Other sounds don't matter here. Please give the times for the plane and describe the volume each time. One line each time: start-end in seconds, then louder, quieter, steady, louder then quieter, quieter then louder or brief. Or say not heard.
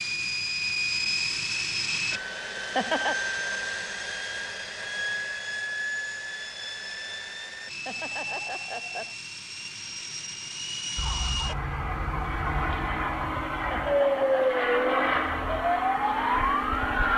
0.0-17.1 quieter then louder.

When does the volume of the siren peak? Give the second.
14 s.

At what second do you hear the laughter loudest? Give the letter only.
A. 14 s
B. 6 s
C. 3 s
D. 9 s
C.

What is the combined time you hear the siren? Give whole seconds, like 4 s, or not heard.
6 s.